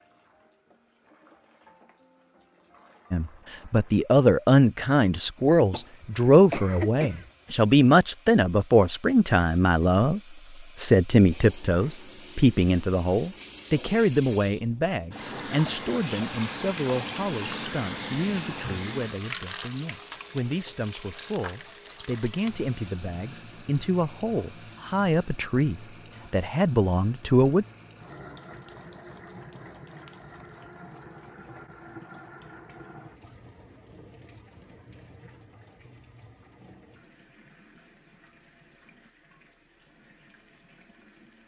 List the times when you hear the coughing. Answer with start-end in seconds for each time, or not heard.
5.7-7.2.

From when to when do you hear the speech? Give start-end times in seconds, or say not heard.
3.1-27.6.